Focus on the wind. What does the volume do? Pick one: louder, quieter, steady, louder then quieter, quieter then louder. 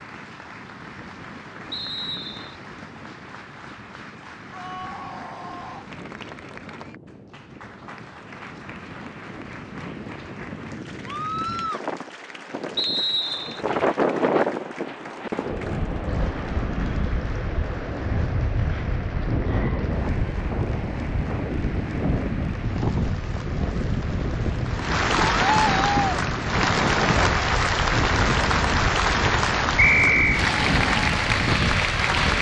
louder.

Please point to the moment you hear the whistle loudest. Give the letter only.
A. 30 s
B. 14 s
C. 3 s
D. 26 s
A.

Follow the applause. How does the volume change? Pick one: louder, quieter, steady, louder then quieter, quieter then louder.
louder.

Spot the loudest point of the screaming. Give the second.
26 s.